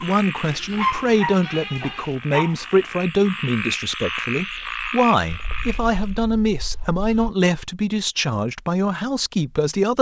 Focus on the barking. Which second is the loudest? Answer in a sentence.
The loudest moment of the barking is at 1 second.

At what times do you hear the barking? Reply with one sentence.
You can hear the barking from 0.0 to 3.0 s.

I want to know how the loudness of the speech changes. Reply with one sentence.
The loudness of the speech stays about the same.